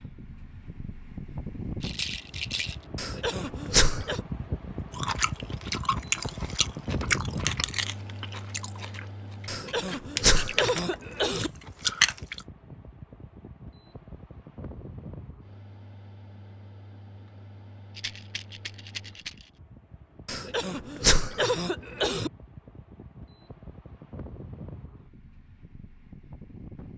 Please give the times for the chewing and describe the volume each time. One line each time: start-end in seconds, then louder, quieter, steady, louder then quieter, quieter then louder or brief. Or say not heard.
4.9-12.4 quieter then louder.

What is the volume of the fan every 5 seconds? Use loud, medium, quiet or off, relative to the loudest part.
loud, loud, medium, quiet, medium, medium.